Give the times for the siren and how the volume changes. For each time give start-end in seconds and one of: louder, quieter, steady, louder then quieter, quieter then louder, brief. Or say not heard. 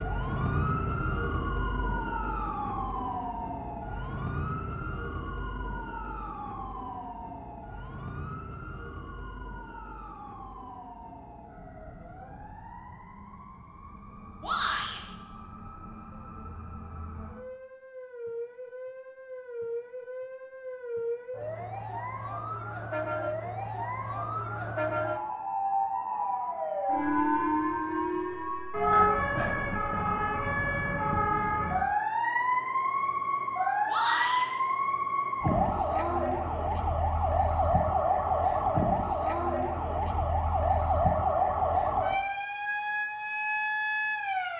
0.0-44.5 quieter then louder.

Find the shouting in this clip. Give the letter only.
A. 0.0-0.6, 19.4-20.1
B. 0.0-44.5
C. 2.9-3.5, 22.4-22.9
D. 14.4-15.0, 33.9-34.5
D.